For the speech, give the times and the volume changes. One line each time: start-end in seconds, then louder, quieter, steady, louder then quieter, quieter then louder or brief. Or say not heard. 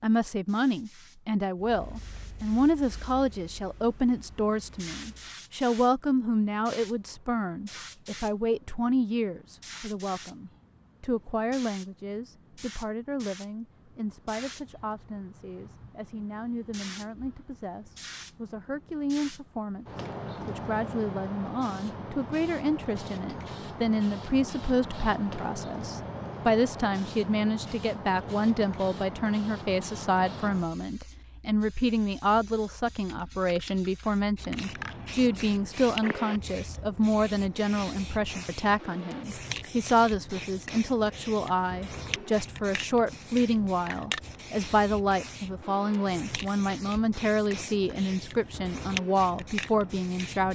0.0-50.4 quieter then louder.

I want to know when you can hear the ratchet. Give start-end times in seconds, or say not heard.
not heard.